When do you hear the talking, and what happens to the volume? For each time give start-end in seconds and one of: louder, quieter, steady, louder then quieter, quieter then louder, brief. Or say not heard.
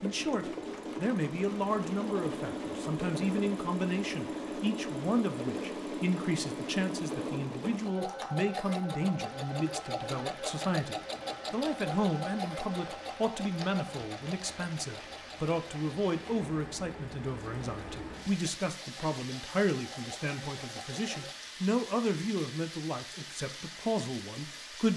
0.0-24.9 steady.